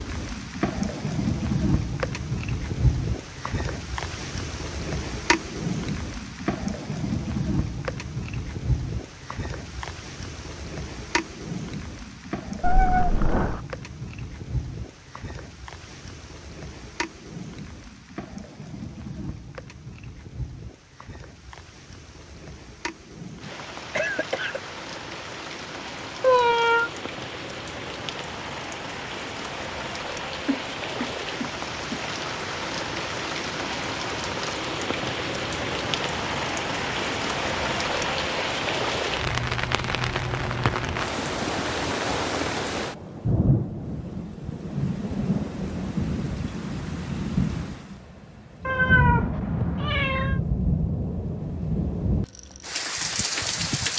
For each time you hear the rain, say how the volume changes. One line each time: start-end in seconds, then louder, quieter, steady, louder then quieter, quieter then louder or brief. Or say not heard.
0.0-53.9 quieter then louder.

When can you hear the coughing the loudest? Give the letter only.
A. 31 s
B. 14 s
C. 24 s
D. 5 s
C.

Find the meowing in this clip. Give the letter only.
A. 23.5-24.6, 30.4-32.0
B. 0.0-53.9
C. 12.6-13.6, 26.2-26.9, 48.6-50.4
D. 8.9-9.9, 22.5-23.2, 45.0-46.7
C.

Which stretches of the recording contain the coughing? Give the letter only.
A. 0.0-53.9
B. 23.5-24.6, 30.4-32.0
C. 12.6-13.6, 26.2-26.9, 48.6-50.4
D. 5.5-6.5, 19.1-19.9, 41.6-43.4
B.